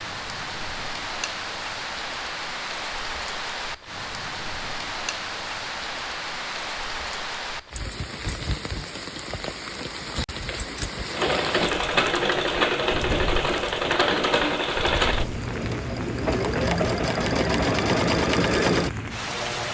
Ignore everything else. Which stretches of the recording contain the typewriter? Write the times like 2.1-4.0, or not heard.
not heard.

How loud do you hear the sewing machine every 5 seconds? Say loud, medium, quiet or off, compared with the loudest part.
off, off, loud, loud.